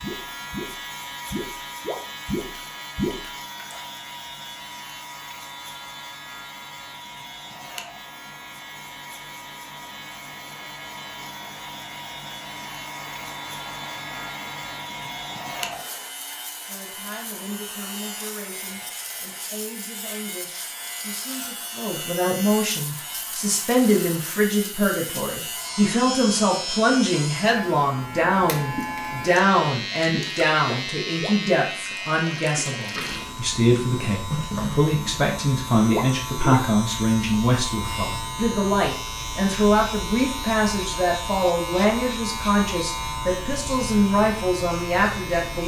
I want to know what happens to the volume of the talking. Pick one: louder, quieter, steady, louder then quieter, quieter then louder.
louder.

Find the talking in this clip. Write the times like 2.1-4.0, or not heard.
16.6-45.6.